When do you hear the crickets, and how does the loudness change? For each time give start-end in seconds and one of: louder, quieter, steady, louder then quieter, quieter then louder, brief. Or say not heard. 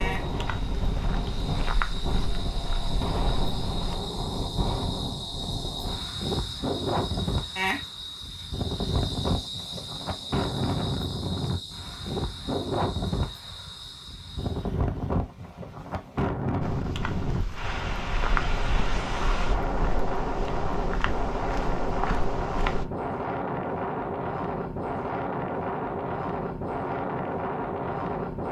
0.0-14.7 louder then quieter.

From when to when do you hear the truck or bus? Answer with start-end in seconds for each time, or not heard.
not heard.